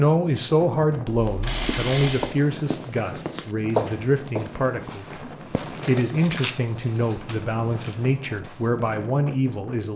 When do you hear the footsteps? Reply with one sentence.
You can hear the footsteps from 1.2 to 8.7 s.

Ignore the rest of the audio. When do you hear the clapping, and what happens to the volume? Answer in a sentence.
You can't hear the clapping here.